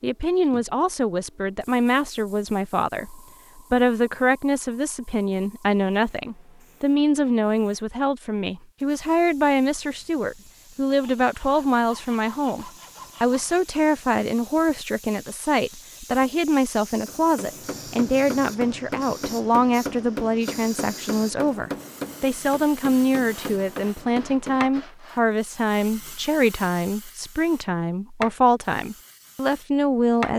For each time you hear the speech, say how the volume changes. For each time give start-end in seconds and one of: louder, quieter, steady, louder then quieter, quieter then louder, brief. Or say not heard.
0.0-30.3 steady.